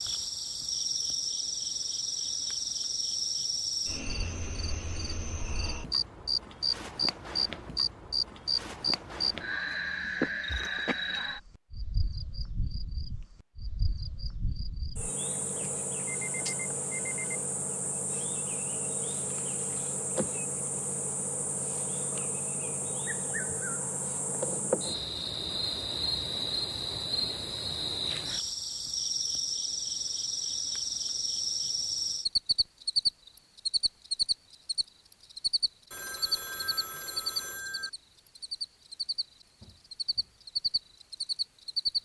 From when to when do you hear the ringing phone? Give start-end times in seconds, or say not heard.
15.6-17.4, 35.9-37.9.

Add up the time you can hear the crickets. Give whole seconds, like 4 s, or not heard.
42 s.